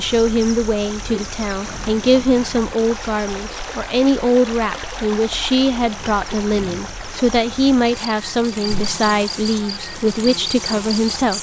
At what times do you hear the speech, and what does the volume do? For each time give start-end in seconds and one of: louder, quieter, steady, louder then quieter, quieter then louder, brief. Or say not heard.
0.0-11.3 steady.